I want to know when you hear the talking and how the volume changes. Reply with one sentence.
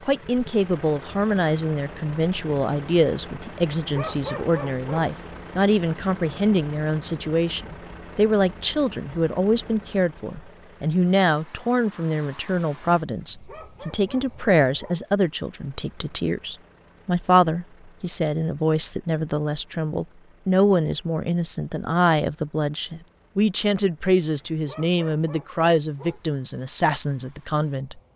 The talking can be heard from 0.1 to 28.0 s, at a steady volume.